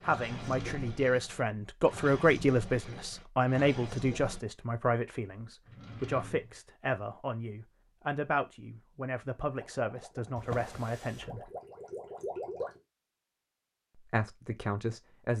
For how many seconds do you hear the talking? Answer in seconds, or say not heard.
13 s.